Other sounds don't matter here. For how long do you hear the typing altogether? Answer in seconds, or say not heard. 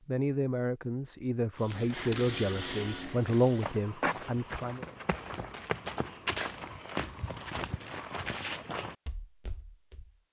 not heard.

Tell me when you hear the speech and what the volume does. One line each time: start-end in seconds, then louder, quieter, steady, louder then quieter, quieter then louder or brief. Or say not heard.
0.1-4.8 louder then quieter.